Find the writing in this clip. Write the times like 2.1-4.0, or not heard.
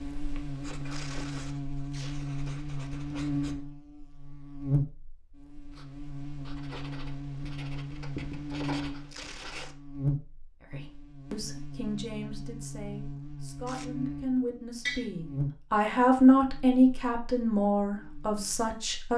0.0-3.5, 5.7-9.7.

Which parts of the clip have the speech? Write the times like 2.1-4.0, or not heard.
10.7-19.1.